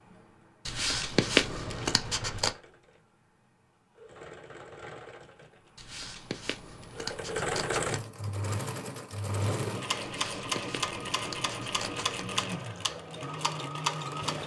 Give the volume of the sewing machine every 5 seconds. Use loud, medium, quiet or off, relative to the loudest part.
quiet, loud, loud.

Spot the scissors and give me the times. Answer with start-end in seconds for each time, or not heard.
0.7-2.5, 5.8-8.0, 10.0-12.4.